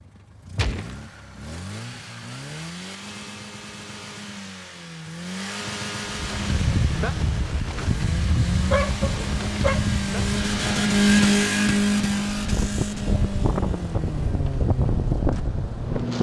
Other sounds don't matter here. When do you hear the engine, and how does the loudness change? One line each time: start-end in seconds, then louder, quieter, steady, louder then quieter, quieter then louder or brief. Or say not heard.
0.0-16.1 louder then quieter.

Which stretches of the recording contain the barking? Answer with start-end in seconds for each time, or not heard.
8.7-9.9.